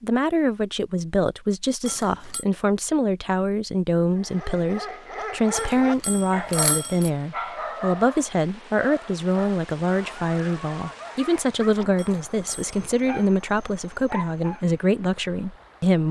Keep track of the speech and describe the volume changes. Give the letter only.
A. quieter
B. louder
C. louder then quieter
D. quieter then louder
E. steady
E.